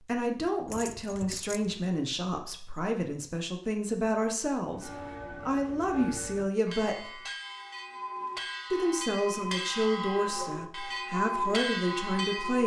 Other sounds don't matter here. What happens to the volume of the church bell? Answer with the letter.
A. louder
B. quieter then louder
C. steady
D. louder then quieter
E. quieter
A.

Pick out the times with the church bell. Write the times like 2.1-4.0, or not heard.
4.7-12.6.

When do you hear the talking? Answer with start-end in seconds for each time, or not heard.
0.1-7.2, 8.7-12.6.